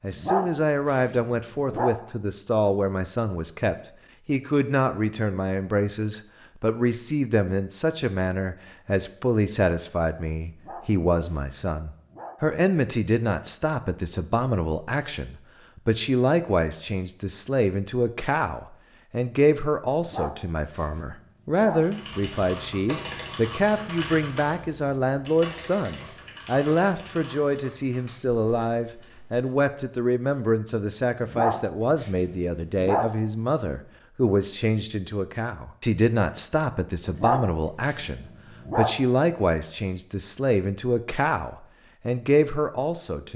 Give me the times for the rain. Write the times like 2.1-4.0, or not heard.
not heard.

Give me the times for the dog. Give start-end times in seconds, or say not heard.
0.1-1.9, 10.5-12.3, 19.9-21.9, 31.2-33.1, 37.0-39.0.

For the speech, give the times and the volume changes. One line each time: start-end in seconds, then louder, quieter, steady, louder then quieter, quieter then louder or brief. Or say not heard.
0.0-43.3 steady.